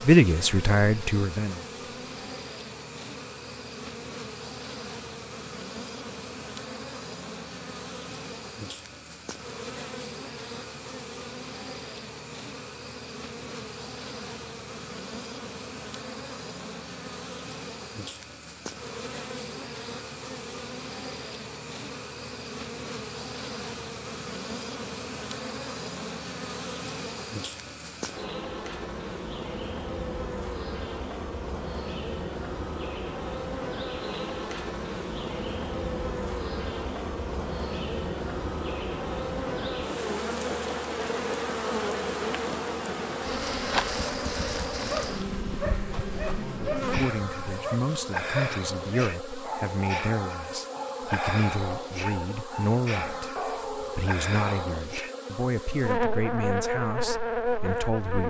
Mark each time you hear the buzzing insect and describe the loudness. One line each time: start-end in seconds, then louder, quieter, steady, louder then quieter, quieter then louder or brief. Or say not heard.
0.0-58.2 louder.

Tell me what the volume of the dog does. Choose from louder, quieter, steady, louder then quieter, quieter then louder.
steady.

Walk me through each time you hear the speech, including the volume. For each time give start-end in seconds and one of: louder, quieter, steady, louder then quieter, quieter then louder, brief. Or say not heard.
0.0-1.7 brief
46.4-58.2 steady.